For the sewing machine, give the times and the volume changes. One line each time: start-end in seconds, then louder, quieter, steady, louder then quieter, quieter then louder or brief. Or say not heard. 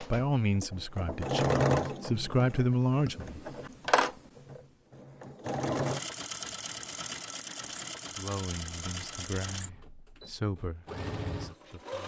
0.0-12.0 quieter.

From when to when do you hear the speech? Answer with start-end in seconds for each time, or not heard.
0.0-3.4, 8.1-12.0.